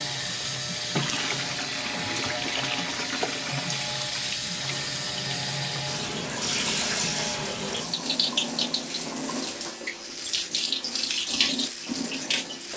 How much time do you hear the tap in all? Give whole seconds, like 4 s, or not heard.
13 s.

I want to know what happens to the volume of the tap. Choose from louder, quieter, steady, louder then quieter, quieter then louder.
steady.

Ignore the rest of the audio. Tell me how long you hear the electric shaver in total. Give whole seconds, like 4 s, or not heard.
13 s.